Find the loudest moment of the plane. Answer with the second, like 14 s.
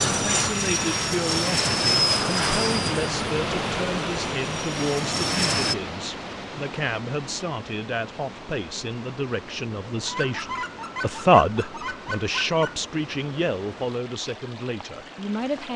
2 s.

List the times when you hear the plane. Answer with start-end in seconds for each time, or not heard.
0.0-5.8.